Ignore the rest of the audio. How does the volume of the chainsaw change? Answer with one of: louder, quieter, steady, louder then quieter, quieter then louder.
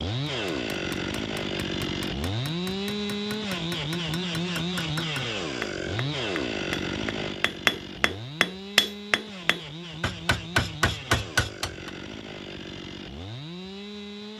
quieter.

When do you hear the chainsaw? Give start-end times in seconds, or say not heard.
0.0-14.3.